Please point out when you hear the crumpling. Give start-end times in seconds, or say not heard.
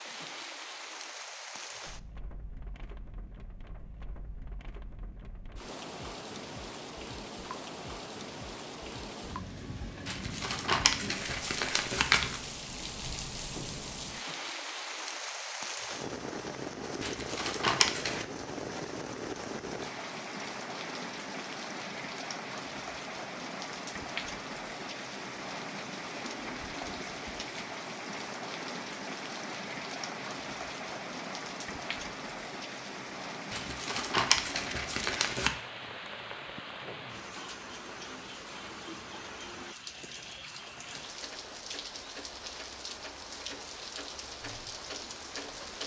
10.1-12.4, 17.0-18.2, 33.5-35.5.